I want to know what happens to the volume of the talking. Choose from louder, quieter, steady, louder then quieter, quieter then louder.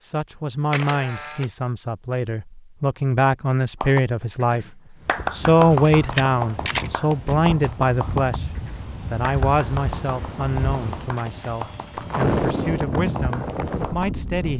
louder then quieter.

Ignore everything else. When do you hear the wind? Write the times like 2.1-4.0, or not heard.
5.0-14.5.